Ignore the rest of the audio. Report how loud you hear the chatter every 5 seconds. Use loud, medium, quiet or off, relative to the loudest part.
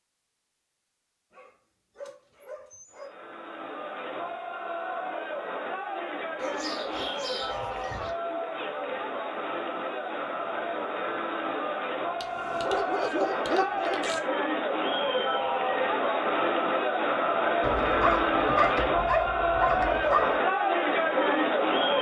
quiet, medium, medium, loud, loud.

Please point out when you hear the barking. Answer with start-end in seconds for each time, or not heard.
1.3-3.1, 6.3-8.2, 12.2-14.2, 17.6-20.4.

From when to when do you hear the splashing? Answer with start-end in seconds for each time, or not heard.
not heard.